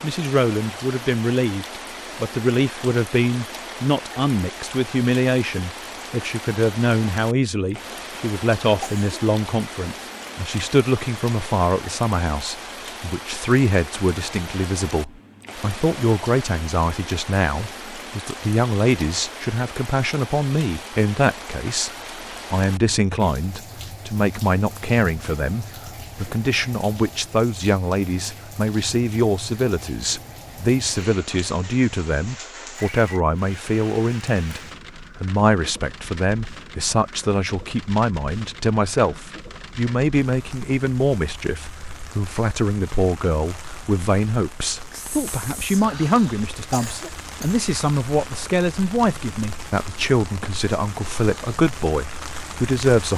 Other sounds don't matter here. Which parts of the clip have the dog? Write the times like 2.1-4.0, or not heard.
not heard.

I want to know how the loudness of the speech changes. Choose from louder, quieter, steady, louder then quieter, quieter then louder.
steady.